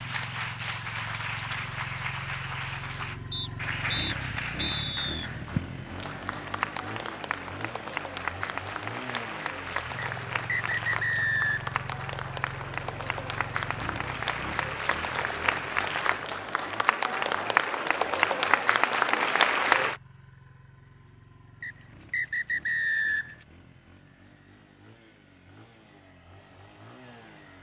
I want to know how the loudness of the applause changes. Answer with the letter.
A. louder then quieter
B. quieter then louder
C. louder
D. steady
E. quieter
C.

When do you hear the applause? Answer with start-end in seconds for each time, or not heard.
0.0-19.9.